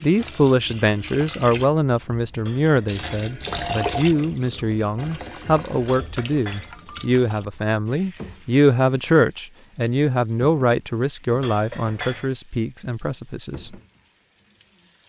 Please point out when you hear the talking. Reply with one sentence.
The talking can be heard from 0.0 to 13.8 s.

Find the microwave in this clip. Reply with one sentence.
You can't hear the microwave here.